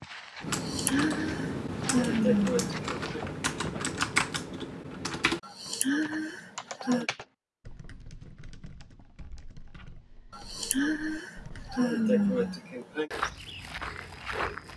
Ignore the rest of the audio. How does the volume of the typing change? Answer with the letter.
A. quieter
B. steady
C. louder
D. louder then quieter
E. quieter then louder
A.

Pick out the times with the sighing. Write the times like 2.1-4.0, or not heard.
0.5-3.2, 5.4-7.0, 10.3-13.1.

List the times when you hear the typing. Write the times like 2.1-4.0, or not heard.
0.4-11.8.